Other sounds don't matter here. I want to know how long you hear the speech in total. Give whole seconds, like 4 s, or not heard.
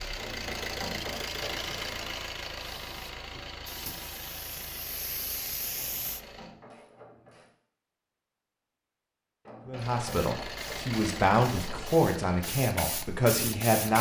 4 s.